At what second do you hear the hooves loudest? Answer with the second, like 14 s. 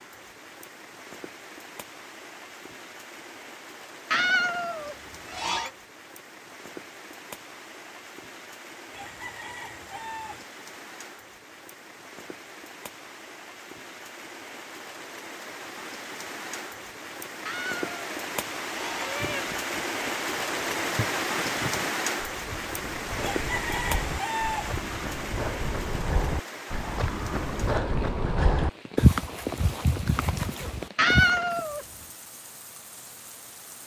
29 s.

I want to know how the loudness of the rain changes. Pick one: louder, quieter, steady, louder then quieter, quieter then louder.
louder then quieter.